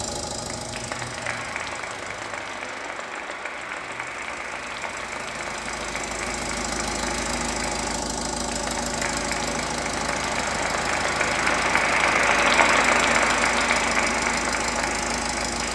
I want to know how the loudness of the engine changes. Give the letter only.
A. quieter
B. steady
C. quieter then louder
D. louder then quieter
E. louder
E.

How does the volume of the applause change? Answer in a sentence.
The loudness of the applause goes up.